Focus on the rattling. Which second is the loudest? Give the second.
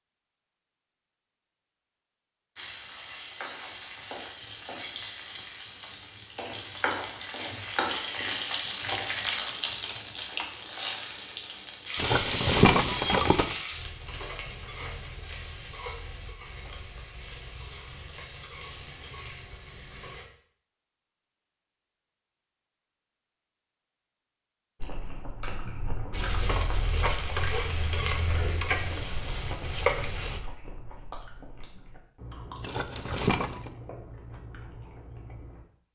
13 s.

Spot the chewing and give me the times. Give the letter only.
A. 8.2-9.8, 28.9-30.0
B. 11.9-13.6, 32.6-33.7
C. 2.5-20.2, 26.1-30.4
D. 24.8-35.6
D.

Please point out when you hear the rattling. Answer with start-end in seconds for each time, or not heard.
11.9-13.6, 32.6-33.7.